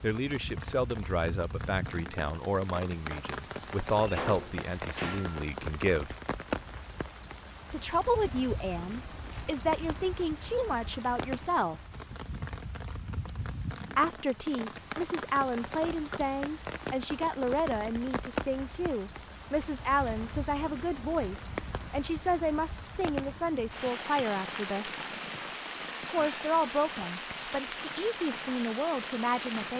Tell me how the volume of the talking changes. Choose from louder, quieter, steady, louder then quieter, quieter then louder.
steady.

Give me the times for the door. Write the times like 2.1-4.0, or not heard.
4.0-5.4.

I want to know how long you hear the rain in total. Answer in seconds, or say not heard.
30 s.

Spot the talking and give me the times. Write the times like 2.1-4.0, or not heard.
0.0-6.2, 7.7-11.8, 13.9-25.0, 26.1-29.7.